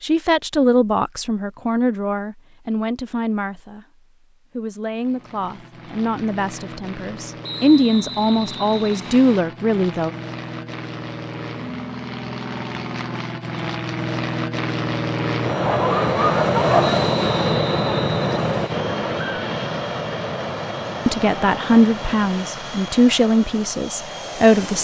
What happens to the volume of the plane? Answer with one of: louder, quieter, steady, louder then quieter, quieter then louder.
louder then quieter.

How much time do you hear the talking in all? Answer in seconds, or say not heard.
13 s.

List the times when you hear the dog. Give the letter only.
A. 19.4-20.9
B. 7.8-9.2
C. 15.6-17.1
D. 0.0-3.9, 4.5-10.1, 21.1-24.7
C.